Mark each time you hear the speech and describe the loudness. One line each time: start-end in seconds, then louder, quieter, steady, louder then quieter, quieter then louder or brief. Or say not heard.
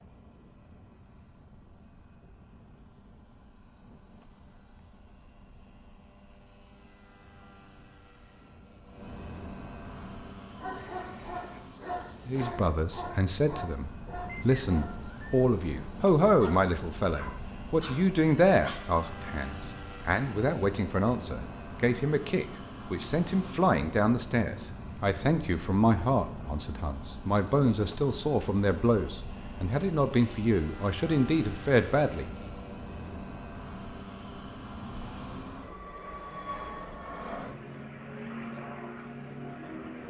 12.2-32.3 steady.